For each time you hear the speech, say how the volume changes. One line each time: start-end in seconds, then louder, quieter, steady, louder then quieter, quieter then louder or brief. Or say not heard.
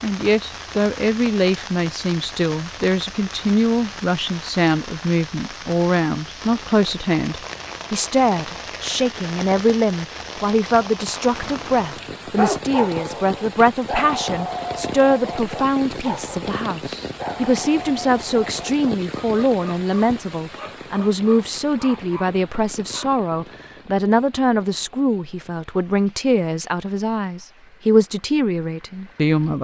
0.0-29.5 steady.